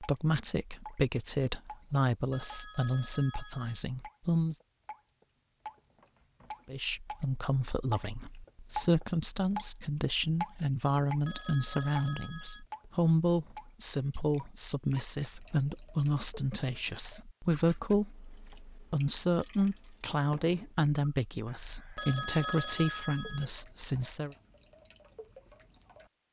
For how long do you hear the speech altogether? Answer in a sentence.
You can hear the speech for 22 seconds altogether.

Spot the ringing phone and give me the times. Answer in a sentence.
The ringing phone can be heard from 2.3 to 3.8 s, from 11.2 to 12.7 s and from 21.9 to 23.4 s.